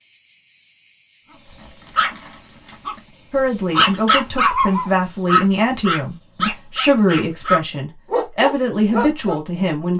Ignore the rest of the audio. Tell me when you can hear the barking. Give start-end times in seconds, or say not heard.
1.5-9.4.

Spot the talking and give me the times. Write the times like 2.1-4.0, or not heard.
3.3-9.9.